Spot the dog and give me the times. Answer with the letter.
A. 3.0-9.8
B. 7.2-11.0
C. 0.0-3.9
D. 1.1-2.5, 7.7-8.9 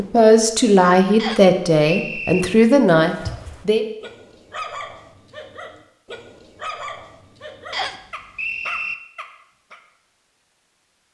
A.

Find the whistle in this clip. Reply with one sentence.
The whistle can be heard from 1.1 to 2.5 s and from 7.7 to 8.9 s.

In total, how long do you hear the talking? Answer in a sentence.
The talking can be heard for 4 seconds in total.